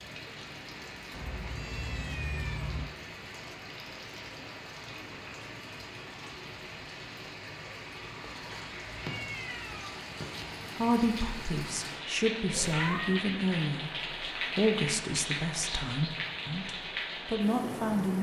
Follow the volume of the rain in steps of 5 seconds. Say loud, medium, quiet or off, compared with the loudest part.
medium, medium, loud, loud.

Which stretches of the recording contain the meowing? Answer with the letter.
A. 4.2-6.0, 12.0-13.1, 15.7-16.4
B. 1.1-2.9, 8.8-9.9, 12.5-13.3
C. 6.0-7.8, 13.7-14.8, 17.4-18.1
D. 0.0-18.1
B.